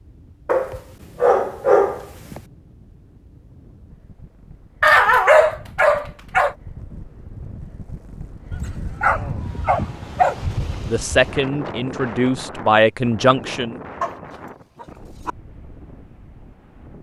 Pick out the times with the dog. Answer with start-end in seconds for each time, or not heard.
0.5-2.4, 4.8-6.5, 8.5-10.6, 14.0-15.3.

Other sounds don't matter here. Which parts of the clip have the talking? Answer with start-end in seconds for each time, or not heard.
10.8-13.8.